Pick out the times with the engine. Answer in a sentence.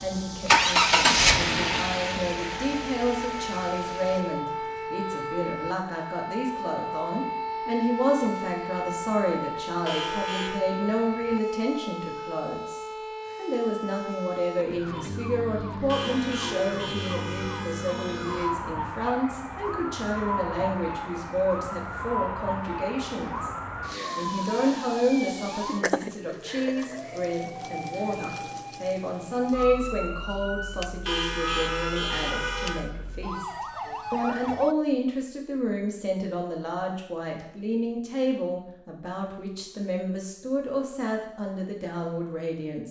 You can hear the engine from 0.0 to 4.3 s.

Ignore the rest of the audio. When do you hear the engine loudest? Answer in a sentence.
The volume of the engine peaks at 1 second.